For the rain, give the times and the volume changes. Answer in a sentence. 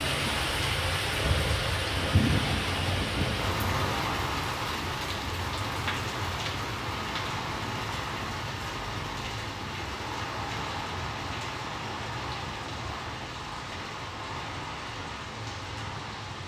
You can hear the rain from 0.0 to 16.4 s, getting quieter.